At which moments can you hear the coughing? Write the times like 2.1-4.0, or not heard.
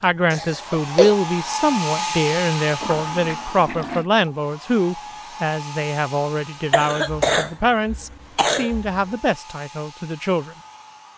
0.3-1.1, 6.7-9.0.